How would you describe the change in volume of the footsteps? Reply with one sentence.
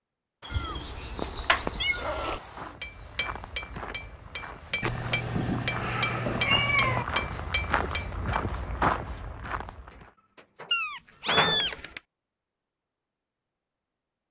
The loudness of the footsteps goes up.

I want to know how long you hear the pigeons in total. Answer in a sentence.
The pigeons can be heard for 4 seconds in total.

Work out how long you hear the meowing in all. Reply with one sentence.
The meowing can be heard for 5 seconds in total.